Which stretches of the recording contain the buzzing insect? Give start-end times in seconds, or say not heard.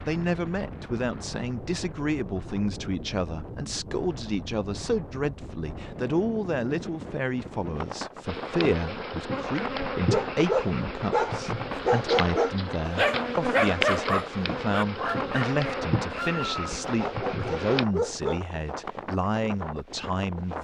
8.2-17.9.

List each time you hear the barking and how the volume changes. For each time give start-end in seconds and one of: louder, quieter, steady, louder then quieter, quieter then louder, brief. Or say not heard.
10.1-18.4 quieter.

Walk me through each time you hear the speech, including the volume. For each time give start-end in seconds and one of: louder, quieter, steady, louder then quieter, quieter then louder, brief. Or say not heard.
0.1-20.5 steady.